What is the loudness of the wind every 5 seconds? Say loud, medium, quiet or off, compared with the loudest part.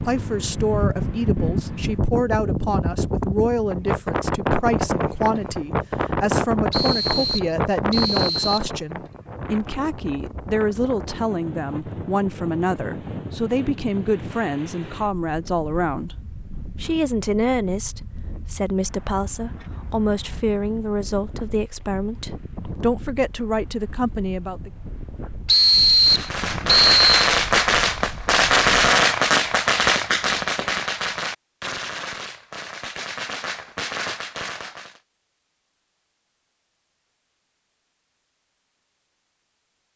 loud, loud, medium, quiet, quiet, quiet, off, off.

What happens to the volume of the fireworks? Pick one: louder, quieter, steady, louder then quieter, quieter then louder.
quieter.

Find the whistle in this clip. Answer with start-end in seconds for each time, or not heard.
6.7-8.7, 25.4-27.1.